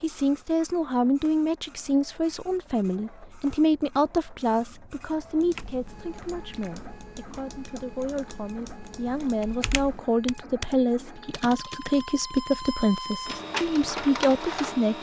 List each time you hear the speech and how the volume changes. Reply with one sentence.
The speech can be heard from 0.0 to 14.9 s, getting quieter then louder.